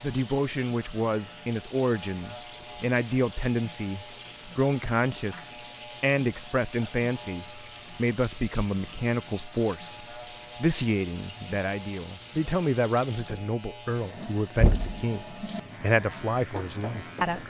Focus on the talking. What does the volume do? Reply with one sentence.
The volume of the talking stays about the same.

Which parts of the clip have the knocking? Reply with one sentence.
The knocking can be heard from 14.6 to 15.0 s.